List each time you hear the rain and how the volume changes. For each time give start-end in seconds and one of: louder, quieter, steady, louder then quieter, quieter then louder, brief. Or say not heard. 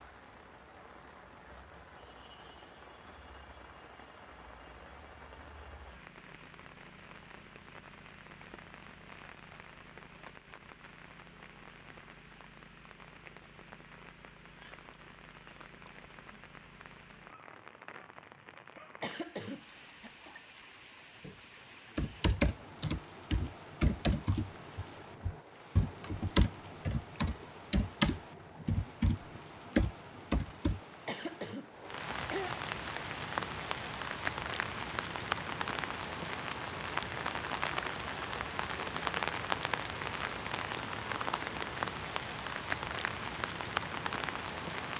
0.0-44.9 louder.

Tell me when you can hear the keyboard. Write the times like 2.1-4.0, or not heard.
21.9-30.8.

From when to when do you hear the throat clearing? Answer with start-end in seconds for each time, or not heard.
18.8-20.3, 30.8-32.5.